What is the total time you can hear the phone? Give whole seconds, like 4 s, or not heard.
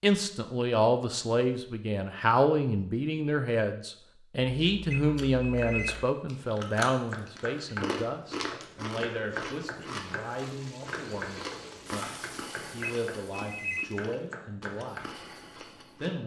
2 s.